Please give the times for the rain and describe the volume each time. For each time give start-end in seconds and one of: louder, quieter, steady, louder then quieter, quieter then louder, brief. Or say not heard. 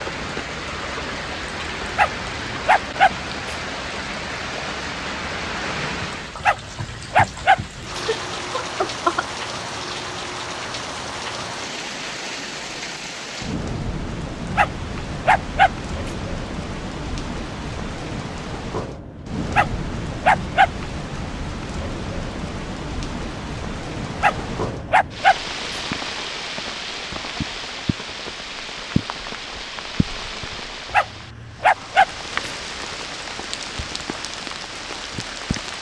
0.0-35.7 steady.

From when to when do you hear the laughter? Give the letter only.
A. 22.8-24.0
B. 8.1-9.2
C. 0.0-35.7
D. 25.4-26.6
B.